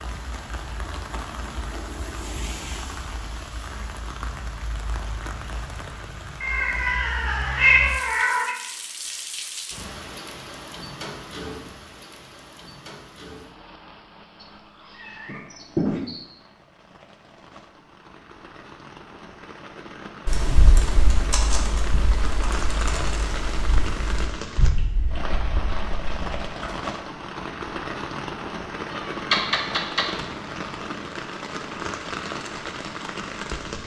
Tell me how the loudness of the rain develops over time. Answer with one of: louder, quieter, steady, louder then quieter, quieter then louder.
quieter then louder.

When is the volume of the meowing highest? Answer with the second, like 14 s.
8 s.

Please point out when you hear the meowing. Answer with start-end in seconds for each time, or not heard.
6.4-8.6, 14.4-16.2, 28.9-30.1.